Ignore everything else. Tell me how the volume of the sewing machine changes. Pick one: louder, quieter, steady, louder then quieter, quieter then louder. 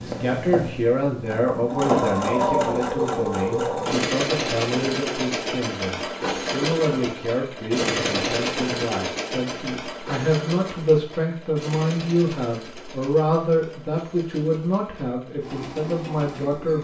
quieter.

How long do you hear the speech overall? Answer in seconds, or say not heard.
17 s.